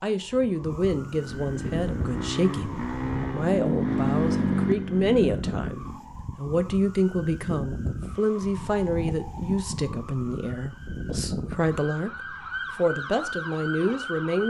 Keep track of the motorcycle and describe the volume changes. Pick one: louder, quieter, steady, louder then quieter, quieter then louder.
louder then quieter.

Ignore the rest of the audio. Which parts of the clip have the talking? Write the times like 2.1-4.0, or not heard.
0.0-14.4.